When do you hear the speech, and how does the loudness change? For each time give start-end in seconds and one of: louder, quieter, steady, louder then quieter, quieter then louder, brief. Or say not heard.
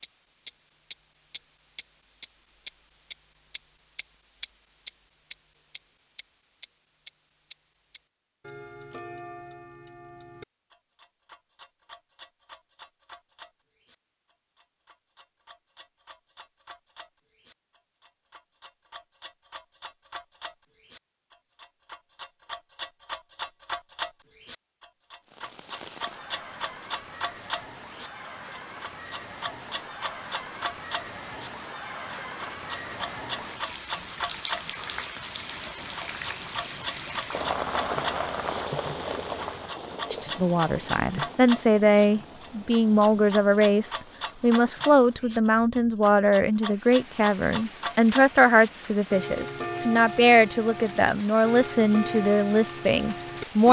40.1-53.6 steady.